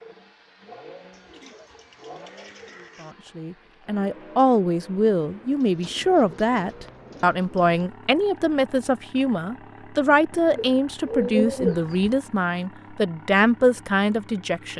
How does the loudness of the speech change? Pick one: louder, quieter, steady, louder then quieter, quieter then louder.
steady.